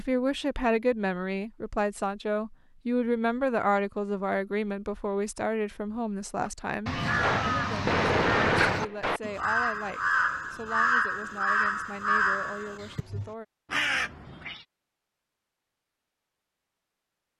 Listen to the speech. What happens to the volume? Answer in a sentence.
The loudness of the speech goes down.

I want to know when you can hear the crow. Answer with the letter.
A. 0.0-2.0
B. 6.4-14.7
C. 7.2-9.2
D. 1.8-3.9
B.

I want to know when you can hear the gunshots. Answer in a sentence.
You can hear the gunshots from 7.2 to 9.2 s.